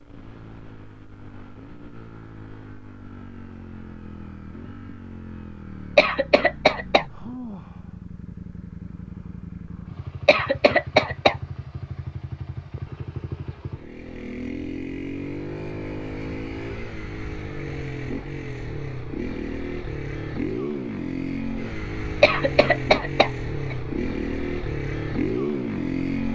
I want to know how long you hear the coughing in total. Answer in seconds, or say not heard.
4 s.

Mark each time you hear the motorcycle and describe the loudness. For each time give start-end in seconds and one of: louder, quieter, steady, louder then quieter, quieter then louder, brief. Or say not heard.
0.0-26.3 louder.